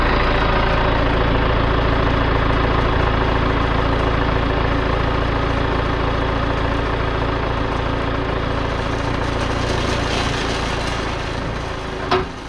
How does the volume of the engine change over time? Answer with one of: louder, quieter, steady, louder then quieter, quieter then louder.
quieter.